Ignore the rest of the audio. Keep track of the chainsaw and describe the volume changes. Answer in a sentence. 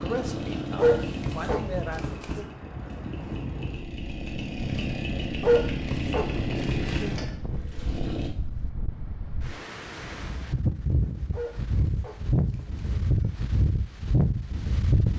The loudness of the chainsaw goes down, then up.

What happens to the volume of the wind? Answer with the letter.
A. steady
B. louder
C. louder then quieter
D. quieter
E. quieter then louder
B.